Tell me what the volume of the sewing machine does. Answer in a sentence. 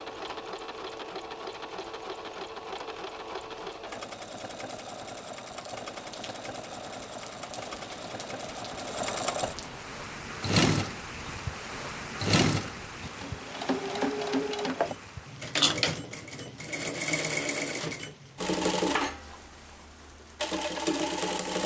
The loudness of the sewing machine goes up.